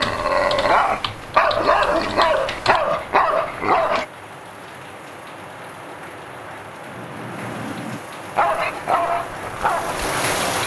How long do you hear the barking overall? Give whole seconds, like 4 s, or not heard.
6 s.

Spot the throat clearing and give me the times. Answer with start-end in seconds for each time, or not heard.
6.8-8.0.